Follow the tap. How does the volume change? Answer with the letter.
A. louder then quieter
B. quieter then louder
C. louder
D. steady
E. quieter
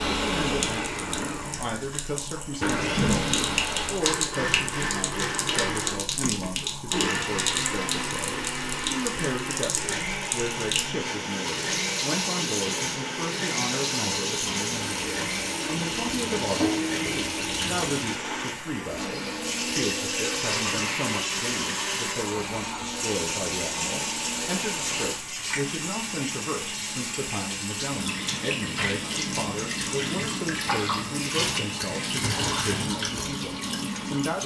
D.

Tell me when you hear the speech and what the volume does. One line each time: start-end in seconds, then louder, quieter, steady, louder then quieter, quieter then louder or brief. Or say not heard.
0.0-34.4 steady.